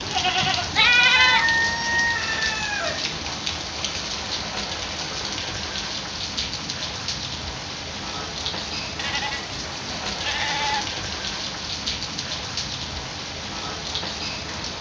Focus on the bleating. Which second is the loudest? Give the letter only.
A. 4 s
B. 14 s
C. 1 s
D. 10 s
C.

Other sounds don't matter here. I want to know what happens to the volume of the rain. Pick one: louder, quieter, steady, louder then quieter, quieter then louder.
steady.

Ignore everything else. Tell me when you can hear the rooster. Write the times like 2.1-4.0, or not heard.
1.1-3.0.